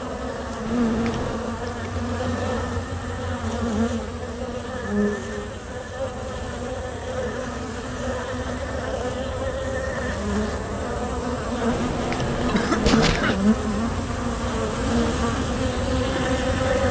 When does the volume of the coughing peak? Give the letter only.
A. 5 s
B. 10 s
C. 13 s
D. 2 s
C.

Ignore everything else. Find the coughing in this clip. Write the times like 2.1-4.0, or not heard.
0.7-1.4, 11.7-13.4.